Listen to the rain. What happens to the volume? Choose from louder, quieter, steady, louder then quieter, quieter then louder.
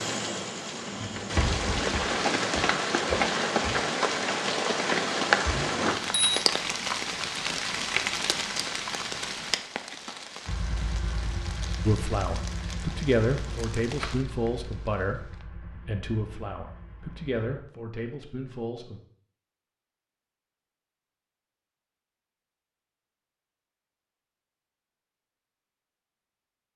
quieter.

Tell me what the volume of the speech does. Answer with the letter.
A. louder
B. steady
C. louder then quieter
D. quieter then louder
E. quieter
E.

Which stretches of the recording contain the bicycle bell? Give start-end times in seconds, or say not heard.
5.7-6.5.